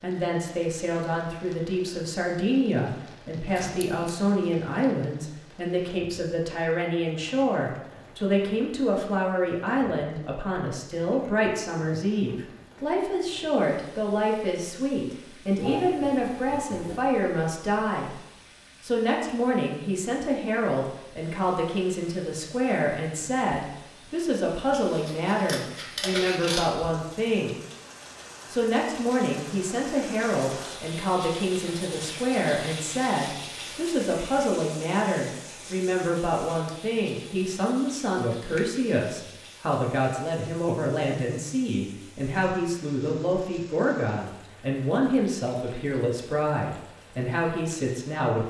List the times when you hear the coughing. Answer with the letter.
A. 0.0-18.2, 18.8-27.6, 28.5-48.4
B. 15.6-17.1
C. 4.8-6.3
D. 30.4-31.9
B.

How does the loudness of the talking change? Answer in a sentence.
The loudness of the talking stays about the same.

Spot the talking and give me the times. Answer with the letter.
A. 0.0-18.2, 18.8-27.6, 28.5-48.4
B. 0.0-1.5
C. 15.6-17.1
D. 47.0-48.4
A.